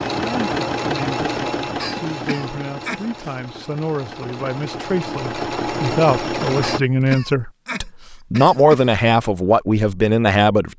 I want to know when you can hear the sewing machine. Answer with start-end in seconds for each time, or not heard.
0.0-6.8.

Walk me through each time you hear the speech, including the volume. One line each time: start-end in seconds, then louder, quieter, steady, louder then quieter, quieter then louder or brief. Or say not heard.
0.1-10.7 louder.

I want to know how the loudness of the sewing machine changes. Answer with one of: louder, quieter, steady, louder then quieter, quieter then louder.
quieter then louder.